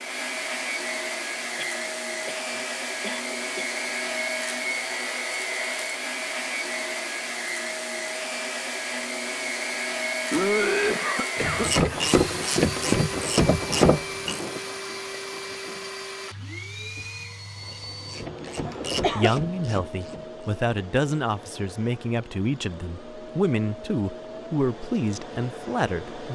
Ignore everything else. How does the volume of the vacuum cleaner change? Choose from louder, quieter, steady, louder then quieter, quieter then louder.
quieter.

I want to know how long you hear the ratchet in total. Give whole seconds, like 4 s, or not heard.
7 s.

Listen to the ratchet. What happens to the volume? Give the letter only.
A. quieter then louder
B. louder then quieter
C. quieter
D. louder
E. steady
C.